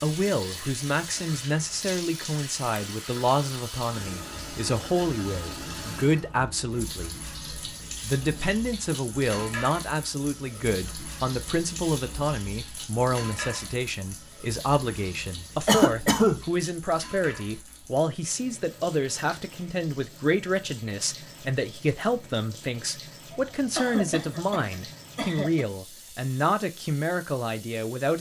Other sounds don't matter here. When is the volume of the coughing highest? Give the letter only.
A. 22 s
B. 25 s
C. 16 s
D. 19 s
C.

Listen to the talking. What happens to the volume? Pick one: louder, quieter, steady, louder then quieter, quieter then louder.
steady.